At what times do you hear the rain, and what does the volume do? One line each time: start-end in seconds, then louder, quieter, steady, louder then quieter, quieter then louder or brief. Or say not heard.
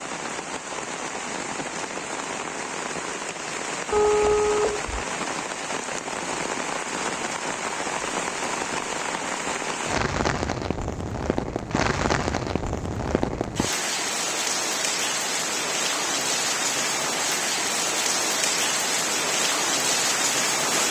0.0-20.8 louder.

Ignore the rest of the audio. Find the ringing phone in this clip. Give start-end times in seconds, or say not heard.
3.9-5.0.